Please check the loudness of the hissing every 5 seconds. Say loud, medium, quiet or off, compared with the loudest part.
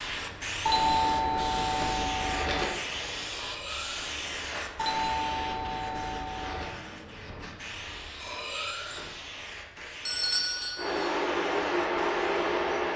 loud, medium, medium.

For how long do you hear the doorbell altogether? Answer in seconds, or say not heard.
5 s.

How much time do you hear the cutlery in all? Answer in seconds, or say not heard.
2 s.